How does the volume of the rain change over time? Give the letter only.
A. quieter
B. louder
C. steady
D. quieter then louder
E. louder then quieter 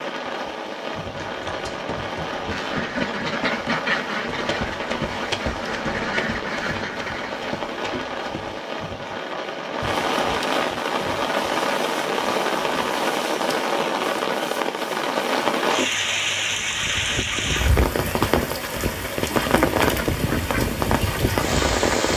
B.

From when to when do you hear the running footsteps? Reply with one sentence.
The running footsteps can be heard from 1.1 to 8.6 s.